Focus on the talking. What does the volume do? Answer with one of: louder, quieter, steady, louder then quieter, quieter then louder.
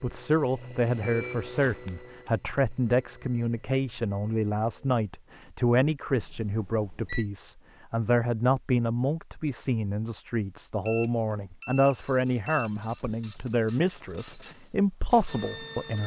steady.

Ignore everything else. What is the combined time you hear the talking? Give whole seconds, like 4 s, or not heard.
16 s.